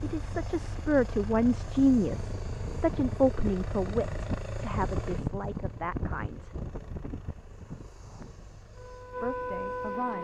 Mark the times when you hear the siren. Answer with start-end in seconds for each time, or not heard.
8.7-10.2.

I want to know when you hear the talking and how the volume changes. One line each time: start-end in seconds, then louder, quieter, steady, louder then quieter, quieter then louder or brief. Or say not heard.
0.0-6.7 quieter
9.2-10.2 brief.